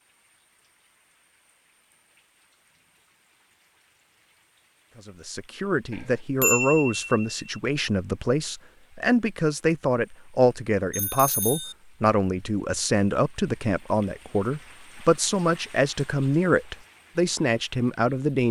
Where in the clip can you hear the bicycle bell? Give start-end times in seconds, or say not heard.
5.9-7.5, 10.9-11.8.